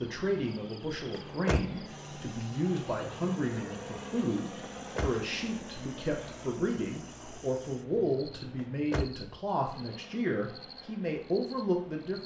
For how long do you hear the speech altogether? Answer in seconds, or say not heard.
12 s.